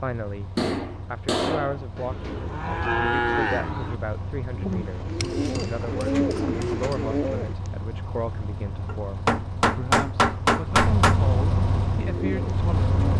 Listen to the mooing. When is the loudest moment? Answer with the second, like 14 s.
3 s.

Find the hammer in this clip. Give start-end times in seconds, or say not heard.
0.6-2.5, 5.1-7.0, 8.8-11.2.